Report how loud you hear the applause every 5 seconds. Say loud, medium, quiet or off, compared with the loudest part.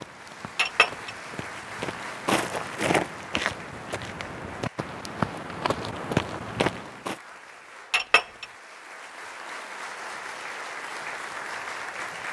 medium, medium, loud.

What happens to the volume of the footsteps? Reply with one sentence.
The loudness of the footsteps goes up.